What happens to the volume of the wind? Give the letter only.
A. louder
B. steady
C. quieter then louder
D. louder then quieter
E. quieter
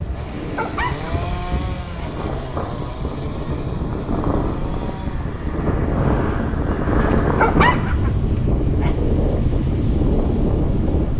A.